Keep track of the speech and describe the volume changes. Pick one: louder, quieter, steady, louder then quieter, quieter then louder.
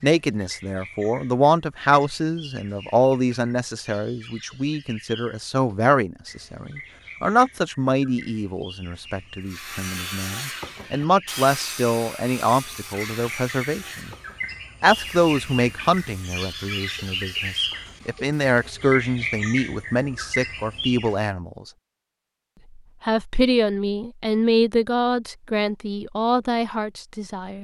steady.